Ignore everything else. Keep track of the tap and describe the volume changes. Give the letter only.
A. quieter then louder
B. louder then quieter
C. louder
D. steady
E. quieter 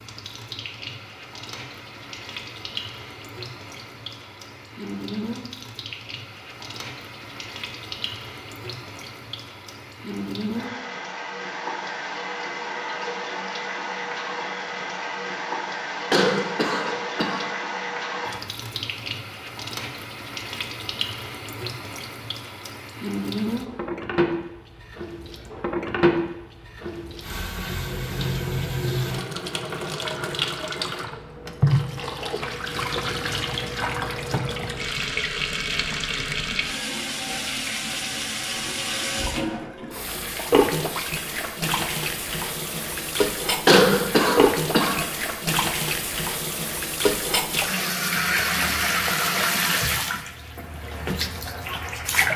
C.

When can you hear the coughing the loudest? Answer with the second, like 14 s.
44 s.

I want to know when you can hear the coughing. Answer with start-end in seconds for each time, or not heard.
16.1-17.5, 43.6-45.0.